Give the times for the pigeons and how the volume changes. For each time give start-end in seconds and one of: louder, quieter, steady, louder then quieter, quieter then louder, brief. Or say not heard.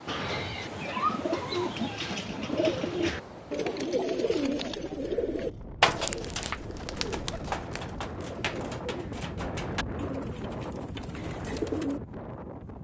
0.1-12.0 quieter.